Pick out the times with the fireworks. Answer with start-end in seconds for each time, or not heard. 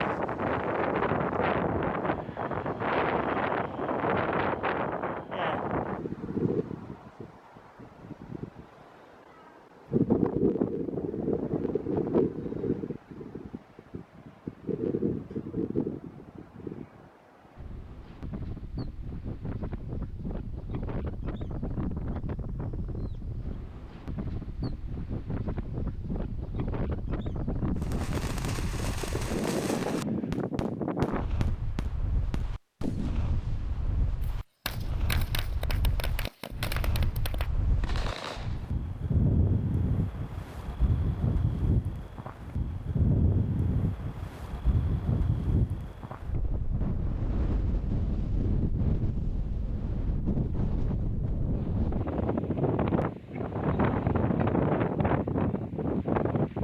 27.8-38.7.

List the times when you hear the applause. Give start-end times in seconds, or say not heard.
not heard.